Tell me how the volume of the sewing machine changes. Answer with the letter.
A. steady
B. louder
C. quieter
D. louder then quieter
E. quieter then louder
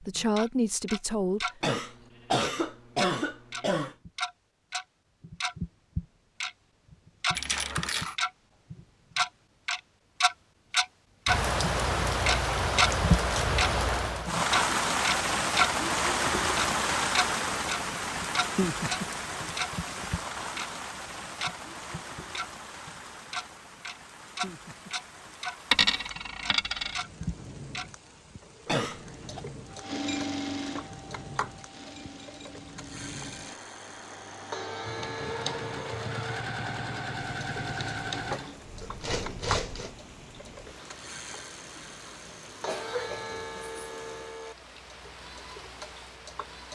E.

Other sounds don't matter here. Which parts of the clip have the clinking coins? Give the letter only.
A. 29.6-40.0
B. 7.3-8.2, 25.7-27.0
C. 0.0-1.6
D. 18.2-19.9
B.